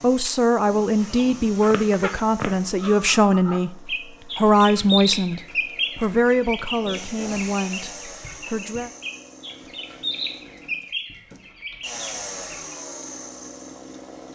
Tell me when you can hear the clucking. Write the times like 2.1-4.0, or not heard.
1.1-12.8.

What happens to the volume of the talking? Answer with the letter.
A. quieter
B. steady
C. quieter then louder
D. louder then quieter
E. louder
A.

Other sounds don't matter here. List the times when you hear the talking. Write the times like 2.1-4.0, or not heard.
0.0-8.9.